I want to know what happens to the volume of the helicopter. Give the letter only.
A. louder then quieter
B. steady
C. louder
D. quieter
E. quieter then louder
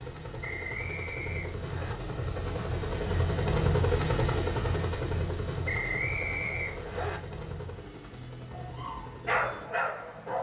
A.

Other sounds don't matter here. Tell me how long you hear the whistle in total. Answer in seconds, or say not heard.
3 s.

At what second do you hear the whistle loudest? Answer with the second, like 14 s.
6 s.